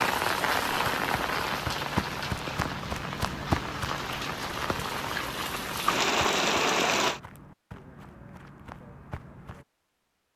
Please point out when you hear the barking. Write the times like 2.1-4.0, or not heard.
not heard.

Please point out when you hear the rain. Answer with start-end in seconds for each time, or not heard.
0.0-7.2.